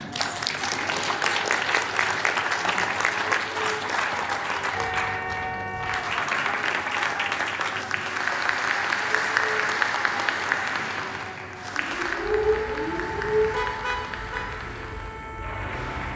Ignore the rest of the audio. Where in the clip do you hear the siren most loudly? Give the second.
13 s.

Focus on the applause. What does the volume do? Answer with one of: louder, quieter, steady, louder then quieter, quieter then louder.
quieter.